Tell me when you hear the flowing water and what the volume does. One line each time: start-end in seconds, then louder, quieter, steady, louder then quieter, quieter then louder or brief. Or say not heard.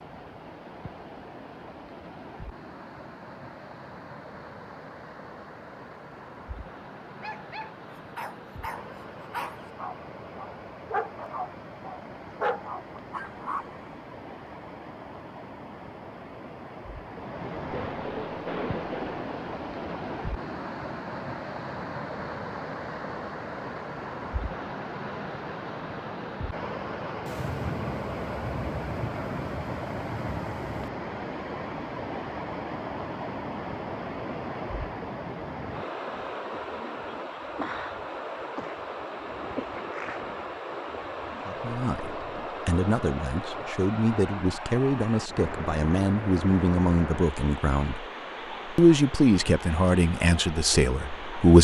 0.0-51.5 louder.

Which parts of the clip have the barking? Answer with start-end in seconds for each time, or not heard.
7.2-13.8.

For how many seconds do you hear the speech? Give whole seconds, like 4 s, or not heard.
9 s.